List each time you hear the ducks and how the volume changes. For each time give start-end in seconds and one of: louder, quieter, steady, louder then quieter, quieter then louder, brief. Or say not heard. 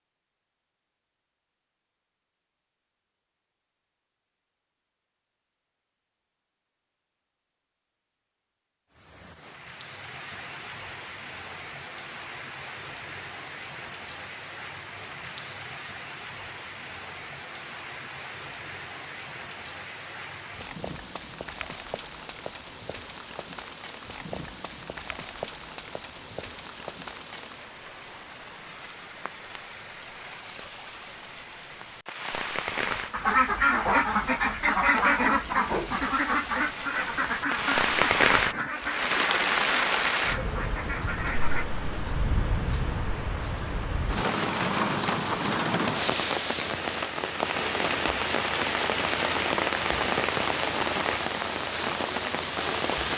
33.1-41.6 quieter.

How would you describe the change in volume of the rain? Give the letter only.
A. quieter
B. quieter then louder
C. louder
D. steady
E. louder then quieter
C.